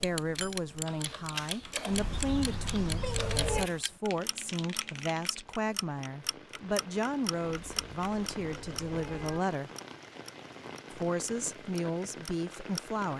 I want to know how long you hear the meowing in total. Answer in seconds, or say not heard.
4 s.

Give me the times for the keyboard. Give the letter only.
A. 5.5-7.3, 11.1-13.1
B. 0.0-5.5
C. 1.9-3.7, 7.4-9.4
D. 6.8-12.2
B.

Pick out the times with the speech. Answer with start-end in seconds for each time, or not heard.
0.0-9.7, 10.9-13.1.